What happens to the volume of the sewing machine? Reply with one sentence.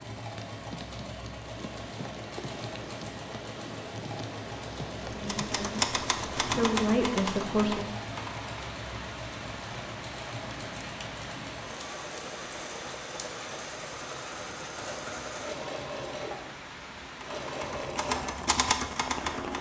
The loudness of the sewing machine stays about the same.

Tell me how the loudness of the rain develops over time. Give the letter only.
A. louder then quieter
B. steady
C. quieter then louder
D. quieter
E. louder
B.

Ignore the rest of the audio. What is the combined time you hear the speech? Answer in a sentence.
You can hear the speech for 3 seconds altogether.